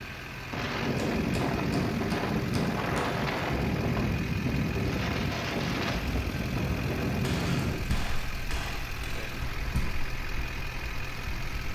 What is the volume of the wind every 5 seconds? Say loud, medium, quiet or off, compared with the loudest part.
loud, loud, quiet.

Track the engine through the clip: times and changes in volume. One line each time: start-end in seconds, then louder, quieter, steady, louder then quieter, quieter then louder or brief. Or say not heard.
0.0-11.7 steady.